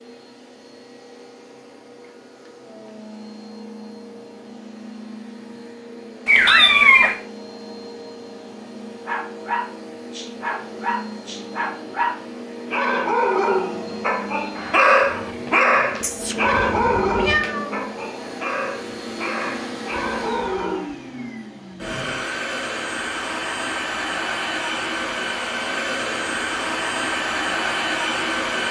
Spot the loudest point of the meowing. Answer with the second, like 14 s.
7 s.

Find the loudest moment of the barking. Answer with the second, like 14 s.
15 s.